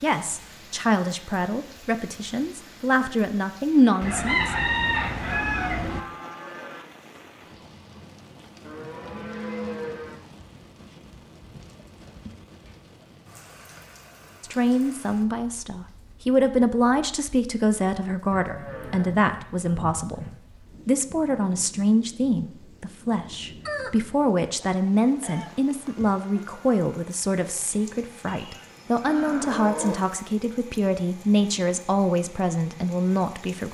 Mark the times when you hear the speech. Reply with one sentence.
You can hear the speech from 0.0 to 4.5 s, from 14.4 to 20.2 s and from 20.9 to 33.7 s.